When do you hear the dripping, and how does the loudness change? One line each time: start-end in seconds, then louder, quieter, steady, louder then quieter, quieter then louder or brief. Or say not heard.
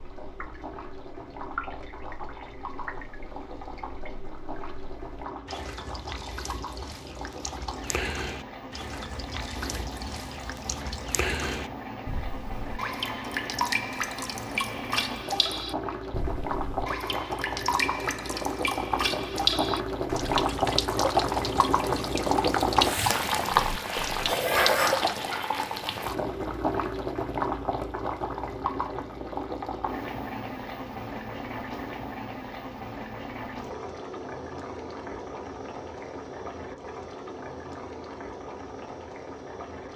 0.0-25.4 louder.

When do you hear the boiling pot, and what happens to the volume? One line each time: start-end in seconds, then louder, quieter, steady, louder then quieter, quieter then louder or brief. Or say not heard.
0.0-39.9 louder then quieter.